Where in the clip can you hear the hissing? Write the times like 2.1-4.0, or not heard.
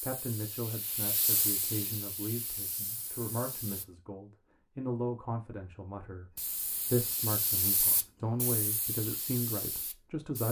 0.0-3.9, 6.3-10.4.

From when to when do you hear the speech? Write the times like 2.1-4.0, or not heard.
0.0-10.4.